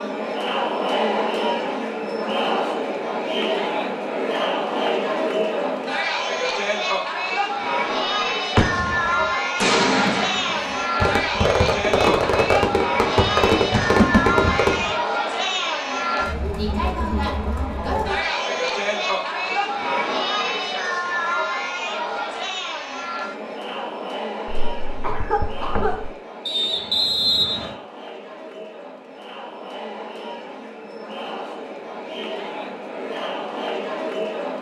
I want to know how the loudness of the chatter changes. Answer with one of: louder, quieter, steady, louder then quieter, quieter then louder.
quieter.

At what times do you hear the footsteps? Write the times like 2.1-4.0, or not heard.
not heard.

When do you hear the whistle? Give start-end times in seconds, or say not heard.
26.4-27.8.